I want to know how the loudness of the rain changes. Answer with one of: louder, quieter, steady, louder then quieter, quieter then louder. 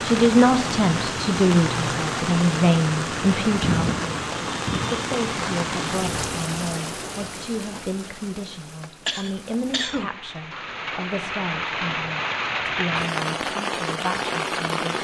quieter then louder.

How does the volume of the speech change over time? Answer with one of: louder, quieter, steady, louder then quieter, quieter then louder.
quieter.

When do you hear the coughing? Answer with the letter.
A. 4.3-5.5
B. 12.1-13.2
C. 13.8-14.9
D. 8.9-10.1
D.